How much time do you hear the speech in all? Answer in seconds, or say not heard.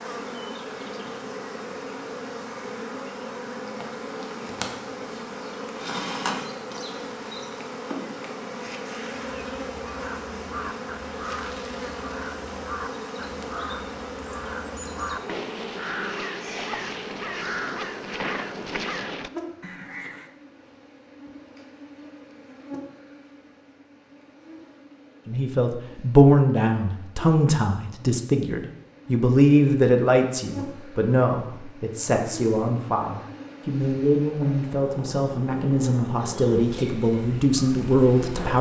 13 s.